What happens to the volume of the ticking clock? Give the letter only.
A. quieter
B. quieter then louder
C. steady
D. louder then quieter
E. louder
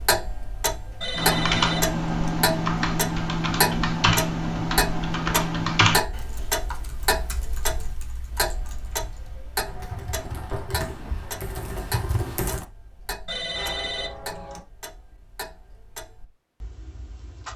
A.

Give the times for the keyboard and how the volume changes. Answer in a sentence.
The keyboard can be heard from 1.1 to 12.7 s, getting quieter then louder.